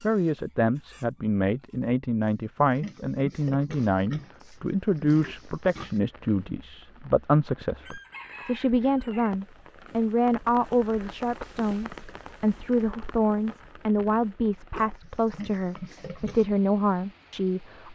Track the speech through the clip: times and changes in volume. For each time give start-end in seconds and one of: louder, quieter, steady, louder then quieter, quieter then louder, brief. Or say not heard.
0.0-17.9 steady.